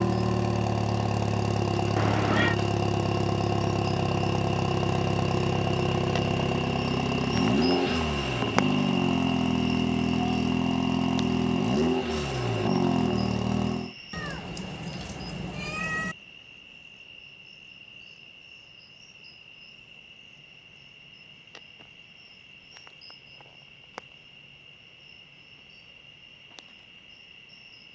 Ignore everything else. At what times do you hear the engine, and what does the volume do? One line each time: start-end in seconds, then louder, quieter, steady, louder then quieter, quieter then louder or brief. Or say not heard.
0.0-13.9 steady.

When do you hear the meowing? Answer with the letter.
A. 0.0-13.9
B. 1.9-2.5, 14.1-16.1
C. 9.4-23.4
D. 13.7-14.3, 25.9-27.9
B.